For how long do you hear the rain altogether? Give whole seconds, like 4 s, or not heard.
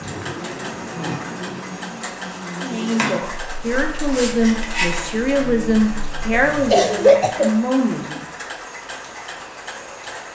not heard.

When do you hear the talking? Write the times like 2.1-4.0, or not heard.
2.5-8.2.